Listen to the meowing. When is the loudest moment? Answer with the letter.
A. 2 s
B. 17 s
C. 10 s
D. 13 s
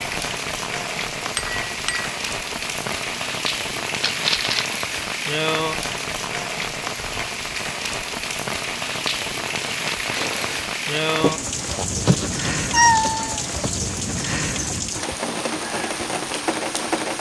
D.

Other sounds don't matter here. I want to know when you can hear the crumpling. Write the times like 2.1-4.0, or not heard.
4.0-4.7, 10.2-11.9.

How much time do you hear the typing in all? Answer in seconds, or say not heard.
not heard.